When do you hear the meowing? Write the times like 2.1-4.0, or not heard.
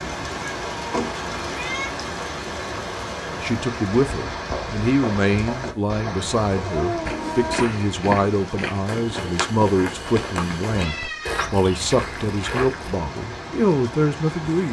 0.7-1.9, 6.5-7.9, 10.8-11.5.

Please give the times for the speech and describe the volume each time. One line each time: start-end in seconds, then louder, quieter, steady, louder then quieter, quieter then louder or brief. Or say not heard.
3.4-14.6 steady.